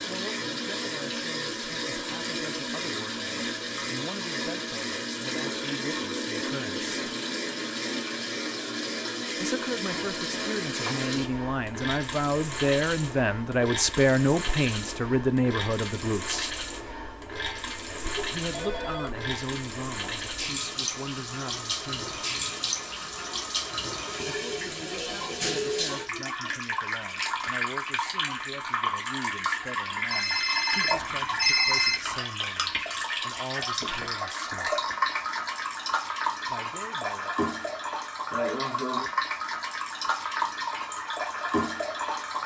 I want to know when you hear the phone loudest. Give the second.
32 s.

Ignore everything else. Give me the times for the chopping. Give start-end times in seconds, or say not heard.
not heard.